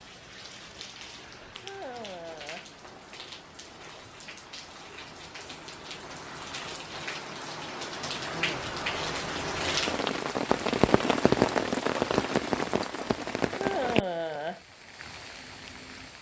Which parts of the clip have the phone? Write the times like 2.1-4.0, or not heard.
not heard.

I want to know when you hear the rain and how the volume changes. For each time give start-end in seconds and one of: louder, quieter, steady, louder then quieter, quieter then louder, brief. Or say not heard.
0.0-16.1 louder then quieter.